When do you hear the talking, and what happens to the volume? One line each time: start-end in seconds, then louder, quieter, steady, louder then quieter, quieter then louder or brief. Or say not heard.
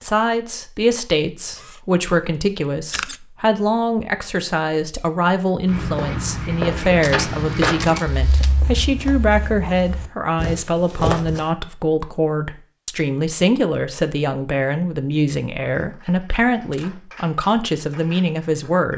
0.0-18.9 steady.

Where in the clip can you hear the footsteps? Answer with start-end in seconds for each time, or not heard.
5.7-11.4.